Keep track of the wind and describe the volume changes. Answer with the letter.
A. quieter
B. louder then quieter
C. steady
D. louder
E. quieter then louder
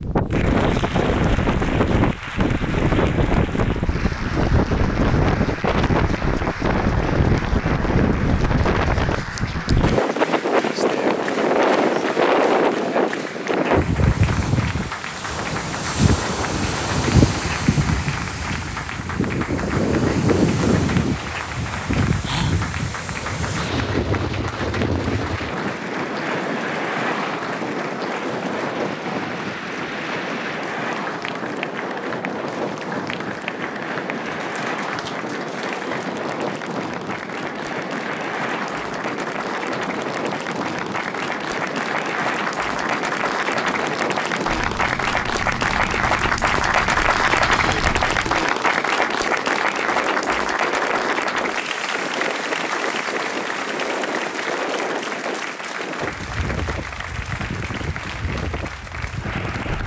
A.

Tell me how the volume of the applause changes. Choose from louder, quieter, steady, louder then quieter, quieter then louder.
louder.